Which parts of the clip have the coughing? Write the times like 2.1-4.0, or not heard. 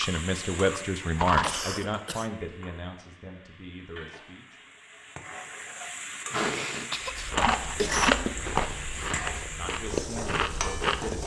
1.4-2.3, 6.3-8.3.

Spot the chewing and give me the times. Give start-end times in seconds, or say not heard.
0.0-1.8, 7.1-11.2.